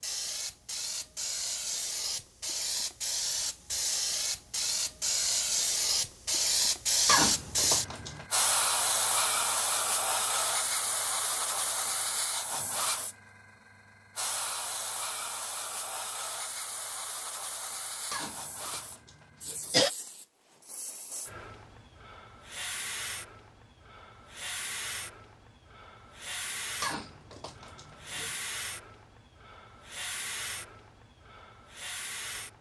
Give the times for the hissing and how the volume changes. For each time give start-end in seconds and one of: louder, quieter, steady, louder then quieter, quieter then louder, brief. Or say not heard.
0.0-32.5 quieter.